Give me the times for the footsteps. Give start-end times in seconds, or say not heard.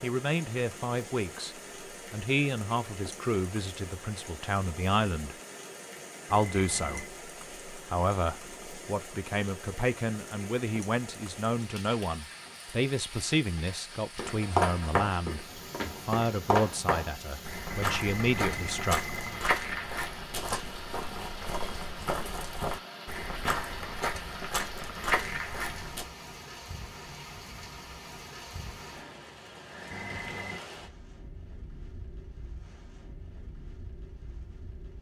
14.2-26.1.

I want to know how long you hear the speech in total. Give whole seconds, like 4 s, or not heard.
18 s.